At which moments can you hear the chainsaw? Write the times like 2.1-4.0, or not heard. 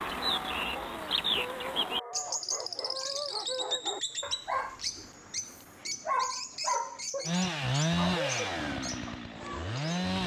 7.2-10.2.